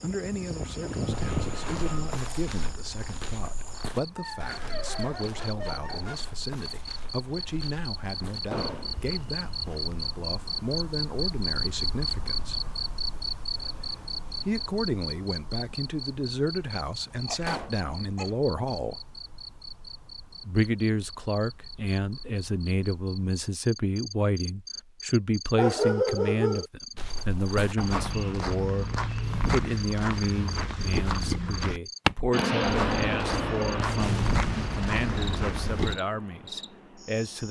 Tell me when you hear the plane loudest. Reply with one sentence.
The loudest moment of the plane is at 33 seconds.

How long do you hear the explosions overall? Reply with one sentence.
The explosions can be heard for 3 seconds in total.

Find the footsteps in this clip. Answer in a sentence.
You can hear the footsteps from 1.1 to 10.1 s and from 26.9 to 36.0 s.